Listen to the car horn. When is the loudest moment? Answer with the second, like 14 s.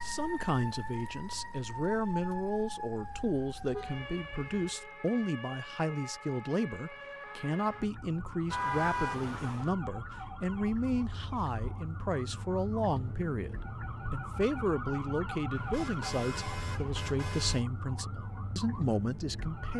9 s.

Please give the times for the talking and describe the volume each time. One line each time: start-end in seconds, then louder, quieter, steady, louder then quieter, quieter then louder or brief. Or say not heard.
0.0-19.7 steady.